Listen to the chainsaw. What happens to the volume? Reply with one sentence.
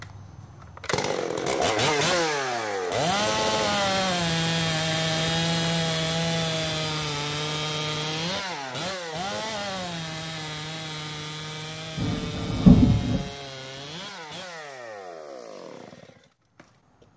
The loudness of the chainsaw goes down.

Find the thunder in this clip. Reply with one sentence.
The thunder can be heard from 11.9 to 13.2 s.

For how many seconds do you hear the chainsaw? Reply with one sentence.
You can hear the chainsaw for 17 seconds altogether.